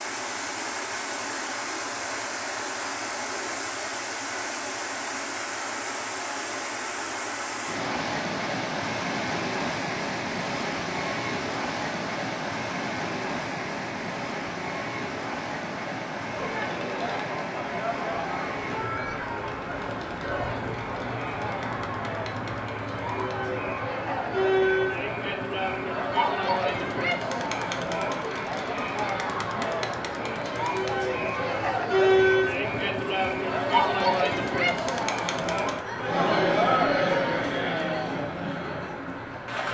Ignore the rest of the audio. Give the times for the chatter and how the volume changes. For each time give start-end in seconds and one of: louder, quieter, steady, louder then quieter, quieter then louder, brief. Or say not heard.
16.3-39.6 louder.